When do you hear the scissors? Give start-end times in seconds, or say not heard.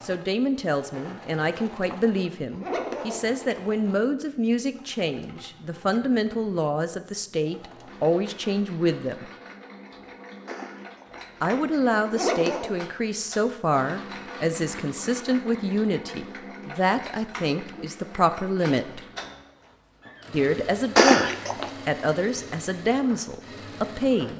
not heard.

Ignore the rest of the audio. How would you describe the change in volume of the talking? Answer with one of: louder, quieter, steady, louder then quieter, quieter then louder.
steady.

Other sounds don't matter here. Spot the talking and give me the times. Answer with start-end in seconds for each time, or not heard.
0.0-9.3, 11.4-19.0, 20.3-24.3.